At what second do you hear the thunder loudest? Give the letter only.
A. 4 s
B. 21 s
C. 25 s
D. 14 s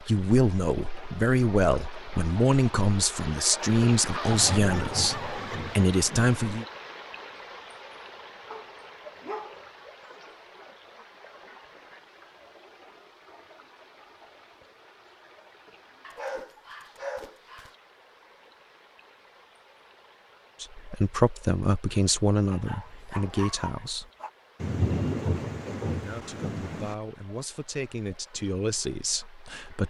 C.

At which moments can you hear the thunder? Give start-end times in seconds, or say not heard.
4.2-6.6, 24.6-26.9.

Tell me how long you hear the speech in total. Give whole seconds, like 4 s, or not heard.
14 s.